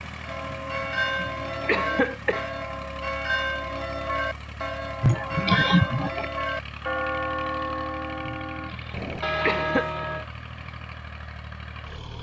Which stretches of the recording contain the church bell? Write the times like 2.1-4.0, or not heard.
0.2-10.2.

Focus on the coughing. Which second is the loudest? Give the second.
6 s.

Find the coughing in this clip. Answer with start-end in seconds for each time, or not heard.
0.5-2.5, 5.0-6.2, 8.2-9.9.